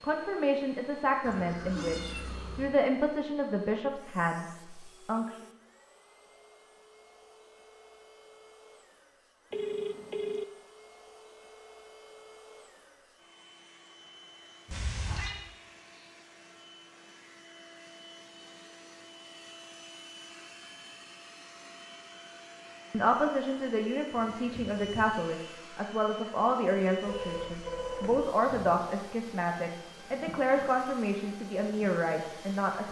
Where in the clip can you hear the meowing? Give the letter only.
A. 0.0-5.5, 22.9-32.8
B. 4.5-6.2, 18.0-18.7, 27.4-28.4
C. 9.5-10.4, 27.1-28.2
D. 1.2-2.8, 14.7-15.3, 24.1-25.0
D.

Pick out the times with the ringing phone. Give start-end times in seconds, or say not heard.
9.5-10.4, 27.1-28.2.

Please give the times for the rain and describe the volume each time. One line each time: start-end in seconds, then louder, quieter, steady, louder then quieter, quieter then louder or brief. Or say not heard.
not heard.